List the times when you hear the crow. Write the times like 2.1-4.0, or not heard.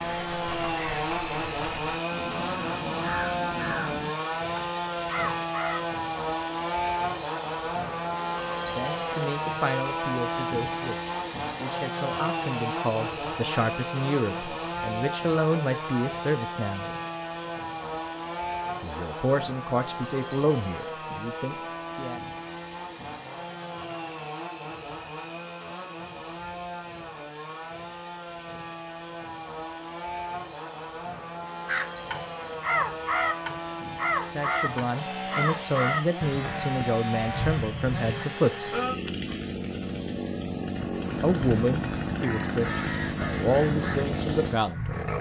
0.0-5.8, 31.6-38.3, 40.8-45.1.